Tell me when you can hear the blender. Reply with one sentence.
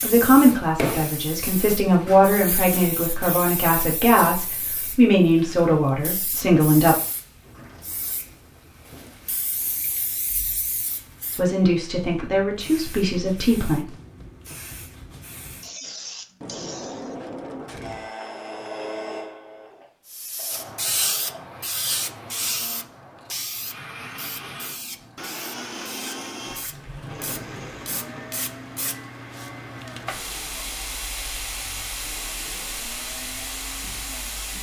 You can hear the blender from 17.8 to 34.5 s.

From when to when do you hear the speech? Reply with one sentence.
You can hear the speech from 0.0 to 7.0 s and from 11.3 to 13.8 s.